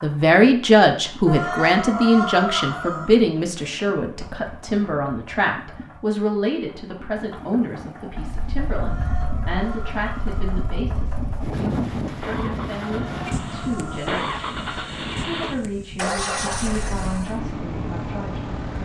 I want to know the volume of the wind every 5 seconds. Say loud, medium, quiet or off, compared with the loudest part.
off, medium, loud, medium.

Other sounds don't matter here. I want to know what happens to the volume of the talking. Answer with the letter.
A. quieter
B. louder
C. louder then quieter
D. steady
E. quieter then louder
A.